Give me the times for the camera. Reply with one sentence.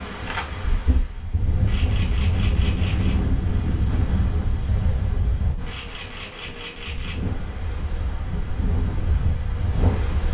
The camera can be heard from 1.6 to 3.2 s and from 5.7 to 7.2 s.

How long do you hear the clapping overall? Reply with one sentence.
You can't hear the clapping here.